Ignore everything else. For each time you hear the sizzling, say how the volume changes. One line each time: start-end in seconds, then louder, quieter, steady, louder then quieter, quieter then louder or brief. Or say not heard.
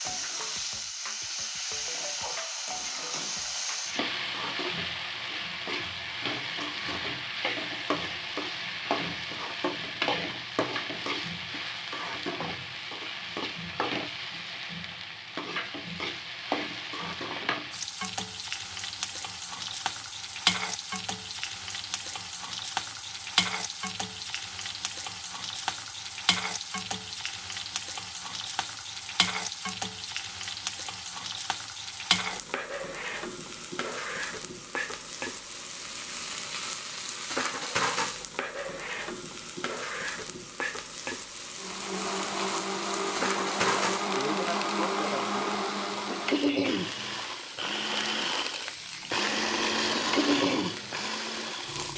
0.0-51.9 steady.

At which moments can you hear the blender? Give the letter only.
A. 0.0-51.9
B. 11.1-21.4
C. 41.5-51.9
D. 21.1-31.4
C.